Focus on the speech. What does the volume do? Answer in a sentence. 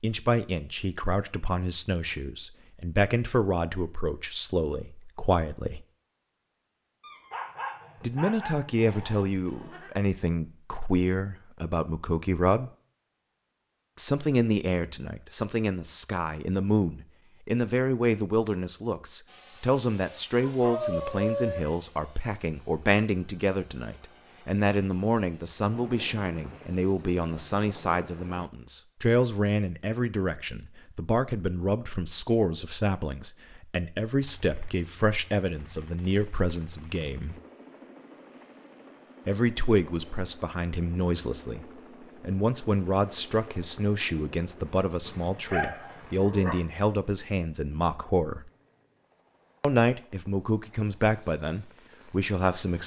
The loudness of the speech stays about the same.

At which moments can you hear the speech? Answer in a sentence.
The speech can be heard from 0.0 to 5.8 s, from 8.0 to 12.7 s, from 13.9 to 37.4 s, from 39.2 to 48.5 s and from 49.6 to 52.8 s.